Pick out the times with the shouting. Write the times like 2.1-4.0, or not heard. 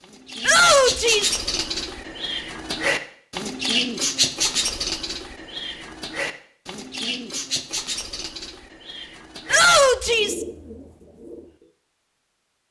0.5-1.4, 9.5-10.4.